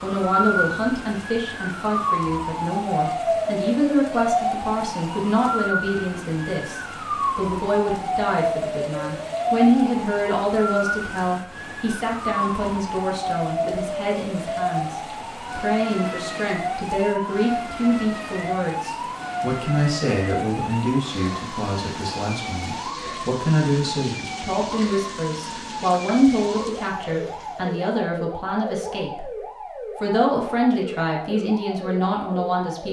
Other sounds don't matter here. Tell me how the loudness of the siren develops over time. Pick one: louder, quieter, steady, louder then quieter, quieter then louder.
quieter.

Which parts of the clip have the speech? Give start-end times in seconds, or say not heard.
0.0-29.3, 30.0-32.8.